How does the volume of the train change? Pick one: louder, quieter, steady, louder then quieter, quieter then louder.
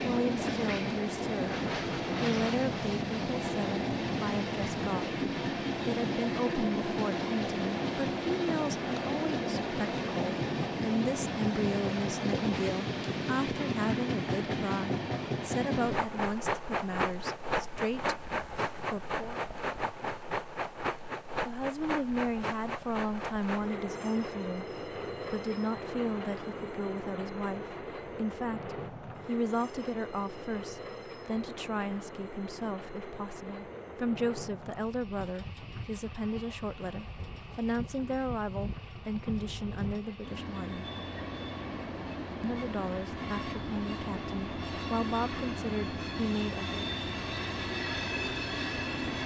quieter then louder.